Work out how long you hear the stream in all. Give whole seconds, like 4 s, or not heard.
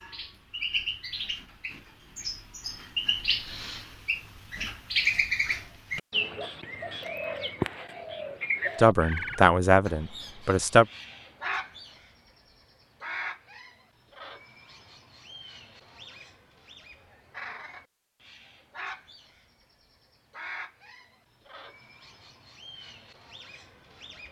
not heard.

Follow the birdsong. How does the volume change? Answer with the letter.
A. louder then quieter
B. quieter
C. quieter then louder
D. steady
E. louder
B.